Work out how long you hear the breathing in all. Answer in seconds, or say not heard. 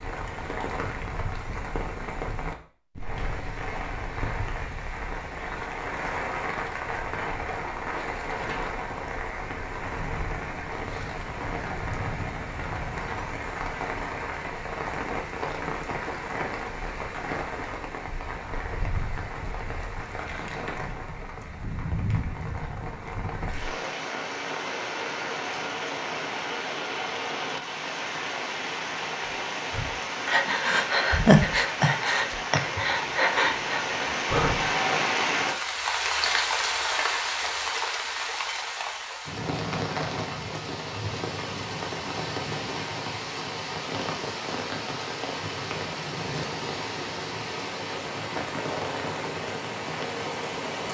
5 s.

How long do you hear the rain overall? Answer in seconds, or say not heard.
51 s.